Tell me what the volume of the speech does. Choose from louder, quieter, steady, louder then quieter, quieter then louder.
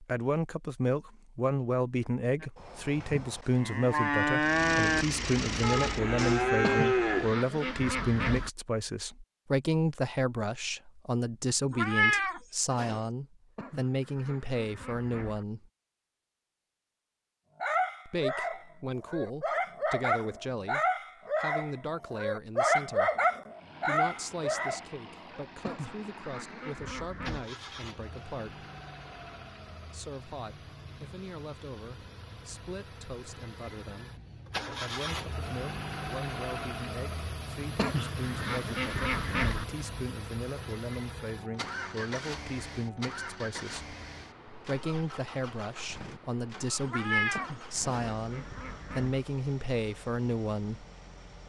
quieter then louder.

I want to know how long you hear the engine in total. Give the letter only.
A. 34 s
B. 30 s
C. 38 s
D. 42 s
B.